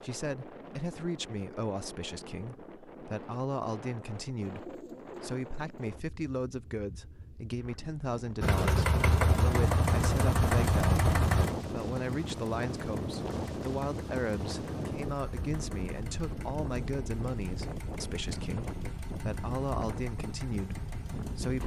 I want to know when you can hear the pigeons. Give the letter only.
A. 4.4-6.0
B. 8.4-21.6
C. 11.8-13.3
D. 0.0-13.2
A.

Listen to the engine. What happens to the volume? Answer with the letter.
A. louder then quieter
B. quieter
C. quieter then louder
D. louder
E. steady
B.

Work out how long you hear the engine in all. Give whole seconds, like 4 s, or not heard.
13 s.